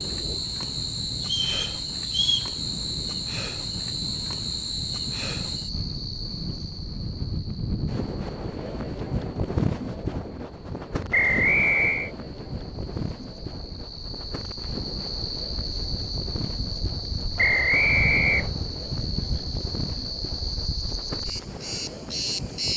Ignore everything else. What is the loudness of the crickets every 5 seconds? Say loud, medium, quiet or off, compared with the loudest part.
loud, medium, medium, loud, loud.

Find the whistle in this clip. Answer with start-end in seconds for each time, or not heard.
1.2-2.5, 11.1-12.1, 17.4-18.5.